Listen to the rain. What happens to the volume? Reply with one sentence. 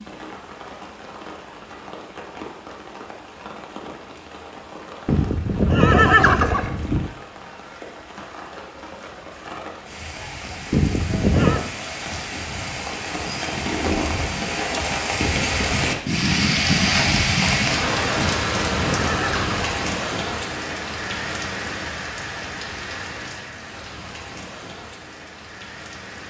The volume of the rain goes up, then down.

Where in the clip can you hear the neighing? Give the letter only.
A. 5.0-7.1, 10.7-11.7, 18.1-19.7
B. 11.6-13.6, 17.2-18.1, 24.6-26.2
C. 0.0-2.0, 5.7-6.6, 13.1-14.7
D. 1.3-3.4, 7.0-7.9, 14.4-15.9
A.